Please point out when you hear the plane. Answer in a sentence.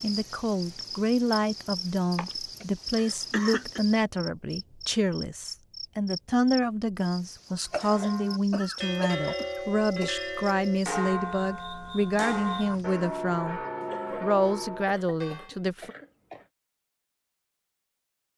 You can't hear the plane here.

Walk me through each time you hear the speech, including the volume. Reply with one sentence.
The speech can be heard from 0.0 to 13.6 s, at a steady volume; and briefly from 14.2 to 15.9 s.